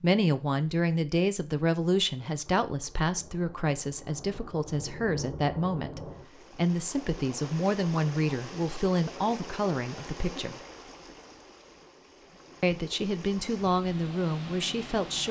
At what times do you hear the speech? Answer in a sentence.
You can hear the speech from 0.0 to 10.6 s and from 12.6 to 15.2 s.